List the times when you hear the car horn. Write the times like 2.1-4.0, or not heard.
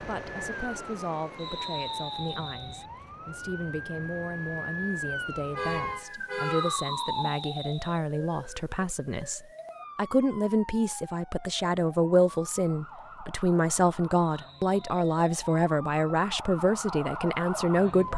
5.5-6.8.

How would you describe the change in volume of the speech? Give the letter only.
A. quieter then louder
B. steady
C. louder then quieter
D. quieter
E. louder
E.